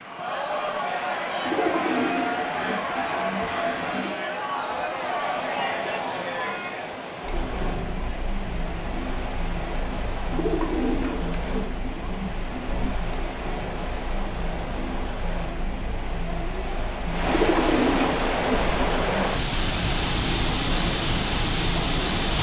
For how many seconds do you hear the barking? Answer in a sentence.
The barking can't be heard in this clip.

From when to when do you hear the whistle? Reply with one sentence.
The whistle can't be heard in this clip.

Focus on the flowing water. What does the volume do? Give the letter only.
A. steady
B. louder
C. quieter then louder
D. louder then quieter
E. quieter
B.